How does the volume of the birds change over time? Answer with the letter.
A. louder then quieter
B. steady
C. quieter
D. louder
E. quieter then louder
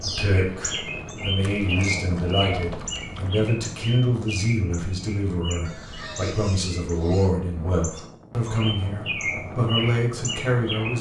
E.